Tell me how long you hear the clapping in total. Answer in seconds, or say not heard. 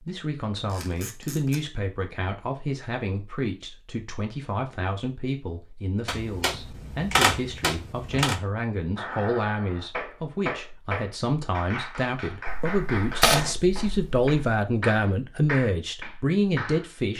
8 s.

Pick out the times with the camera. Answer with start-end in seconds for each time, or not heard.
0.7-1.6, 6.0-8.4, 12.4-14.3.